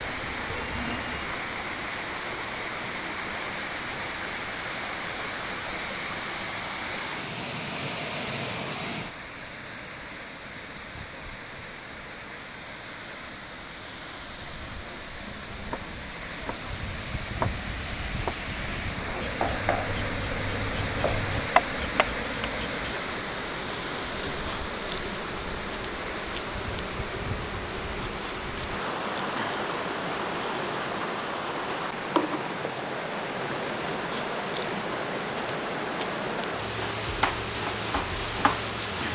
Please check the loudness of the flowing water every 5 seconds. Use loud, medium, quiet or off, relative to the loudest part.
loud, loud, medium, loud, loud, loud, loud, loud.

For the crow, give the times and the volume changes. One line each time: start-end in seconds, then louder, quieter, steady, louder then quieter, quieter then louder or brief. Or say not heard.
not heard.